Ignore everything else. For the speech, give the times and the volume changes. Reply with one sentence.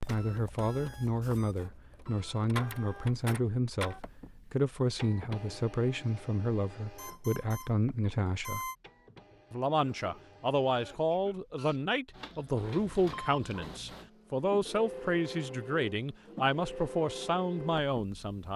The speech can be heard from 0.1 to 8.7 s, at a steady volume; and from 9.5 to 18.5 s, at a steady volume.